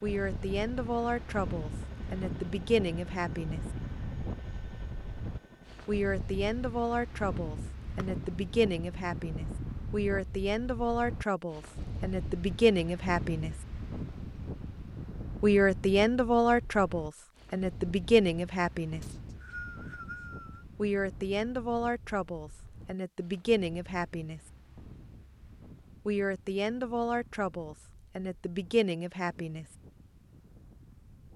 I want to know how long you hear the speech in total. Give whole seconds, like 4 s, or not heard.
22 s.